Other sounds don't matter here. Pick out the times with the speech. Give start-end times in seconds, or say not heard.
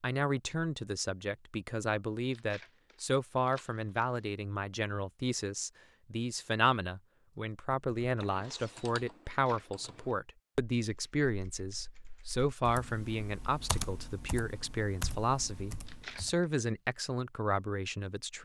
0.0-18.3.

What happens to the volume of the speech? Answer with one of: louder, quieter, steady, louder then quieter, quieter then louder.
steady.